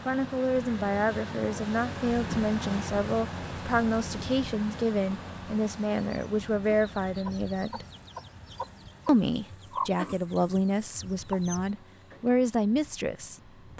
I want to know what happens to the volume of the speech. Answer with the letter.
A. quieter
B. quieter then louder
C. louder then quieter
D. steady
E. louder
D.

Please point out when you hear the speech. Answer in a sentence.
You can hear the speech from 0.1 to 7.8 s and from 9.1 to 13.7 s.